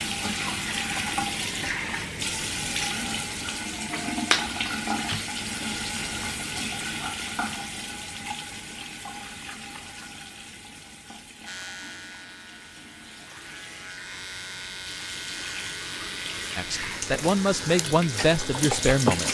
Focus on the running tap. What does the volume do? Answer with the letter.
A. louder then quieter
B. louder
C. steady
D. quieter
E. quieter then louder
E.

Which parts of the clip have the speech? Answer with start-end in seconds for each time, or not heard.
16.6-19.2.